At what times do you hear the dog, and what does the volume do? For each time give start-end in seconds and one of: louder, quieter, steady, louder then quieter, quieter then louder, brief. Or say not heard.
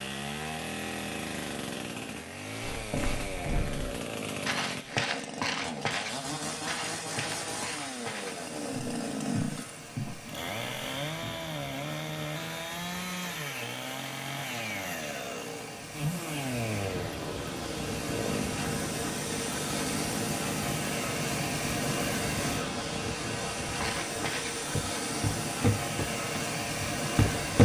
not heard.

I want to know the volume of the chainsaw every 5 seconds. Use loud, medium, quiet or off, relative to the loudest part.
loud, loud, loud, loud, loud, off.